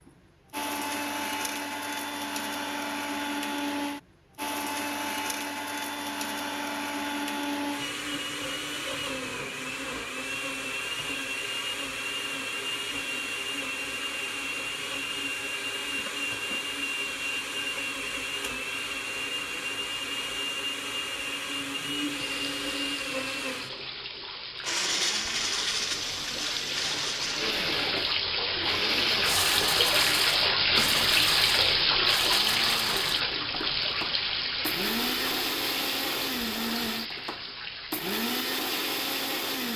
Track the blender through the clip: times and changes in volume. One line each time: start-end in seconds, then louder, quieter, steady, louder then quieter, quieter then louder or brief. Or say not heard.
0.1-39.7 steady.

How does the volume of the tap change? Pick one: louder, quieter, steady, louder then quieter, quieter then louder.
louder then quieter.